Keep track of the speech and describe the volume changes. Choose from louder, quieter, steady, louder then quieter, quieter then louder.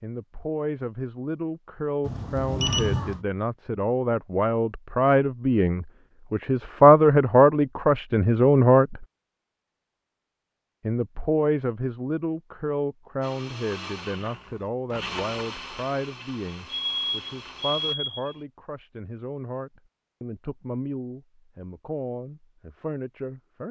louder then quieter.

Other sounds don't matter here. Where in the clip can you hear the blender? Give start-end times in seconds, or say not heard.
13.2-17.9.